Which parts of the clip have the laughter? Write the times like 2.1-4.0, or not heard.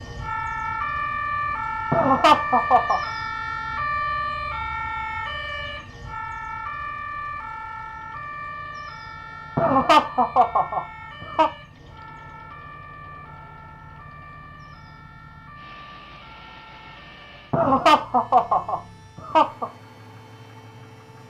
1.9-3.0, 9.6-11.5, 17.5-19.6.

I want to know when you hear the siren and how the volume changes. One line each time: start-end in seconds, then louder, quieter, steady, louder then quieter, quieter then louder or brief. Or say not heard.
0.0-21.2 quieter.